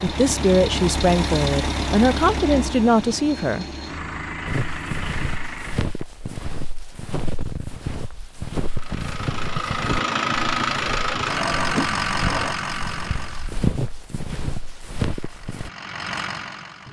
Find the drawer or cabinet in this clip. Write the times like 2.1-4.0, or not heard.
11.2-12.6.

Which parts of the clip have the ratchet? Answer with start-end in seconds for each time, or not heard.
not heard.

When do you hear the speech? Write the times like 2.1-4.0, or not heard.
0.0-3.6.